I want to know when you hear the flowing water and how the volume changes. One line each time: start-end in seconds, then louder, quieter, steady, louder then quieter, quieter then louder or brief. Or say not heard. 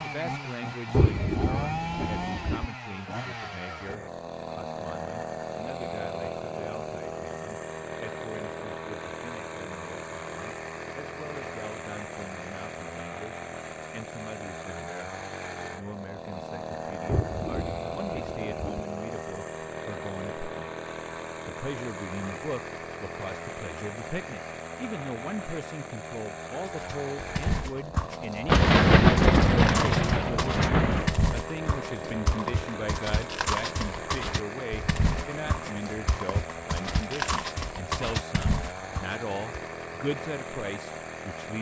not heard.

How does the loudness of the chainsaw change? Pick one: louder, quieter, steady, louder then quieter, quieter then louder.
steady.